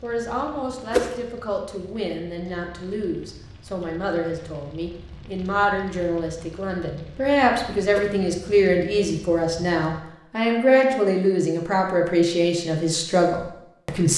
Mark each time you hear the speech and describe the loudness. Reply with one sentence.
You can hear the speech from 0.0 to 14.1 s, getting louder.